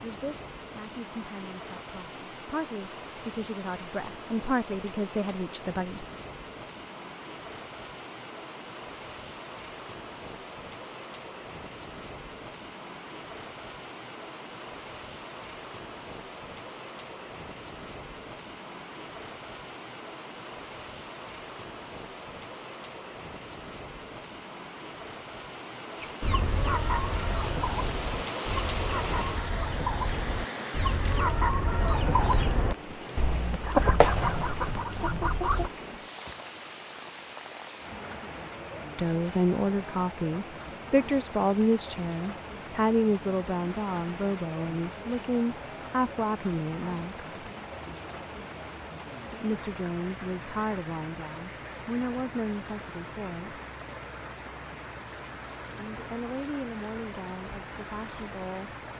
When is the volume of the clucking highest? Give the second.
34 s.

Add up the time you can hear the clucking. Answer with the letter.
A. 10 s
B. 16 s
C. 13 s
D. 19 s
A.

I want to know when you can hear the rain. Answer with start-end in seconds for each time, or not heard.
0.0-58.9.